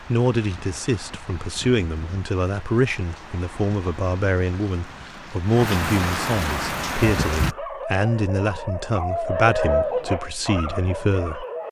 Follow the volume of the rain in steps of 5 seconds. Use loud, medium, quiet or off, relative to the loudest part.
quiet, loud, off.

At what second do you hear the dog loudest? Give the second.
10 s.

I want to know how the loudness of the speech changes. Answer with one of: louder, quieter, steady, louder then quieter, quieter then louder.
steady.